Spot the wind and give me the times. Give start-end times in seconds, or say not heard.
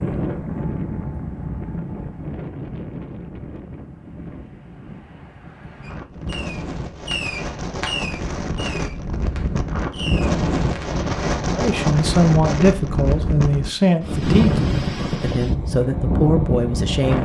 0.0-17.2.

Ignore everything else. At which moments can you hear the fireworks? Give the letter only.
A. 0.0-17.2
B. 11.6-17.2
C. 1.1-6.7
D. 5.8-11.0
D.